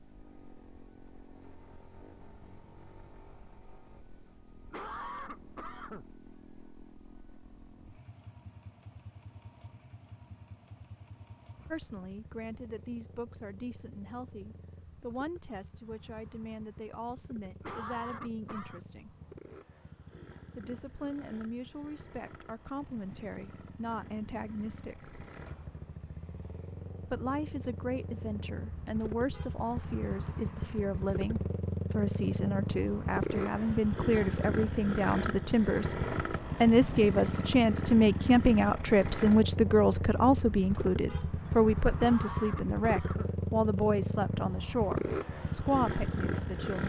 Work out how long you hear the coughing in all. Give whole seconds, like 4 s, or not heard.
4 s.